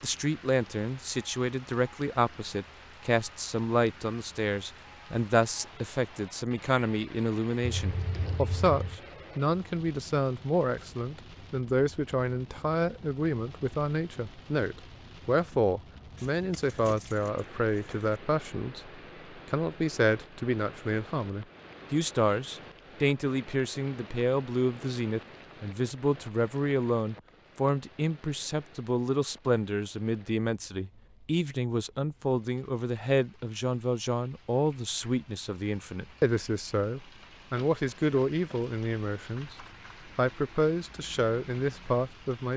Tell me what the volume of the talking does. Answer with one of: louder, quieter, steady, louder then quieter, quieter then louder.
steady.